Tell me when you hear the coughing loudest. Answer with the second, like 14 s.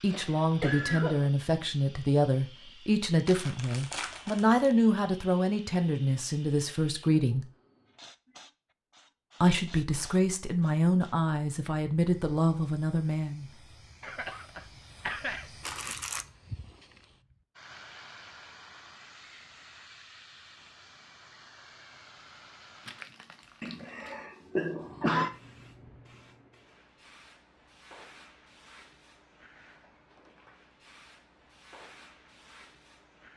25 s.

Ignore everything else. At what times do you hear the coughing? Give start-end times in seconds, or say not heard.
0.1-1.3, 14.0-15.6, 23.6-25.3.